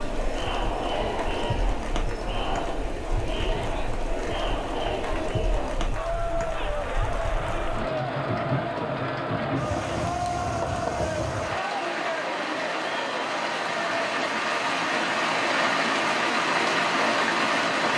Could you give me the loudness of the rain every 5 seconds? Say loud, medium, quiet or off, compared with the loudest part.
quiet, medium, medium, loud.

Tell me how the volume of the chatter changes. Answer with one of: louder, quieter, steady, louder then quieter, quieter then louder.
steady.